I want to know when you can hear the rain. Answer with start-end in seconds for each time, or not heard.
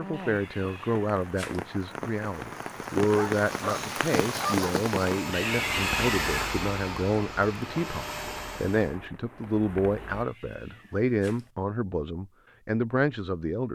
0.0-10.2.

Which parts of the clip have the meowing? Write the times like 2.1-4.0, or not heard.
0.1-1.6, 5.3-6.3, 9.9-11.5.